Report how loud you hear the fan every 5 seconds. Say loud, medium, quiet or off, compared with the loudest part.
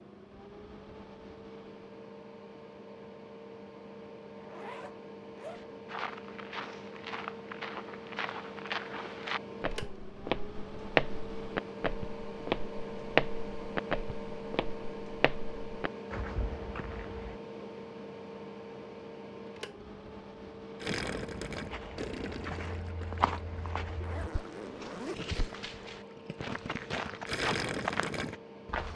medium, loud, loud, loud, medium, medium.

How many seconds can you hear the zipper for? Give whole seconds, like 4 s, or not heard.
3 s.